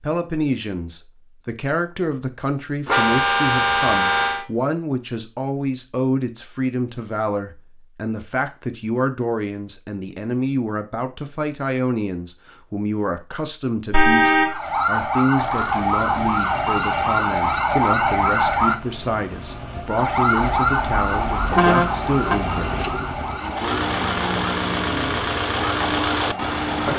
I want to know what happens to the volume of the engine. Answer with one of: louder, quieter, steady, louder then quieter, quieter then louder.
louder.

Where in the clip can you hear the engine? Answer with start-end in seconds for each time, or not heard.
15.3-26.9.